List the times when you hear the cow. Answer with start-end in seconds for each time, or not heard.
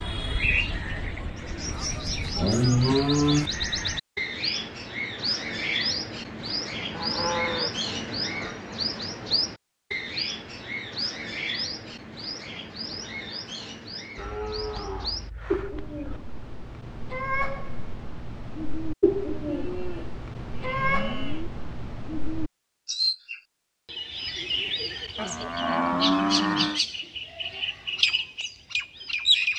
1.6-3.5, 6.9-8.6, 14.2-16.2, 19.4-21.5, 25.1-26.8.